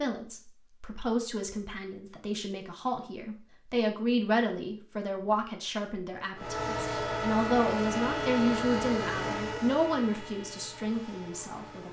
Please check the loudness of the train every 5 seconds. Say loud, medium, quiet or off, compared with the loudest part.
off, loud, quiet.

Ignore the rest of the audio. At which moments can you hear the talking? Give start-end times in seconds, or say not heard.
0.0-11.8.